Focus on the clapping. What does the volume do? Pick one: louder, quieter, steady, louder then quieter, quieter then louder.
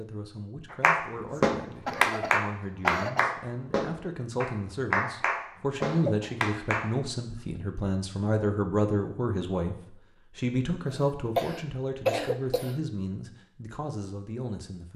quieter.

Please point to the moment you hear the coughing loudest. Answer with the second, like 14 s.
12 s.